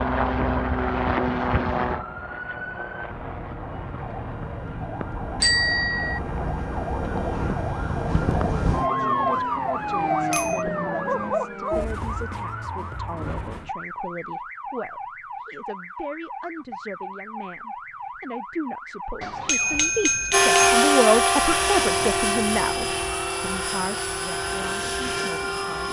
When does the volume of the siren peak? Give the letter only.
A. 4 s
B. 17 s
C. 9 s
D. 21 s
C.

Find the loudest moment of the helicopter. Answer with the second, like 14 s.
21 s.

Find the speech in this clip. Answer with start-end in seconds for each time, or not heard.
8.8-25.8.